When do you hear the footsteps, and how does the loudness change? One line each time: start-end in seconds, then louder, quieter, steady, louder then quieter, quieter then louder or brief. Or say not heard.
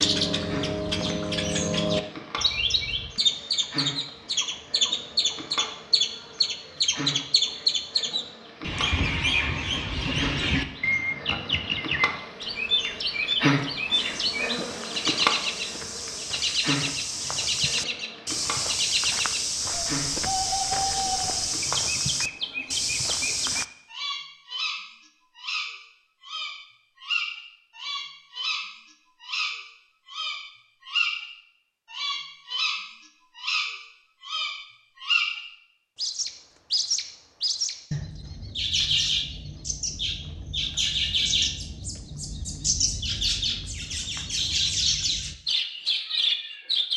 13.9-23.6 louder.